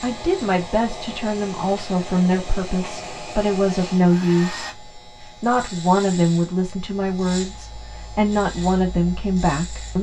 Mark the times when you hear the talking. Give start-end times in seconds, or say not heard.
0.0-4.8, 5.4-9.9.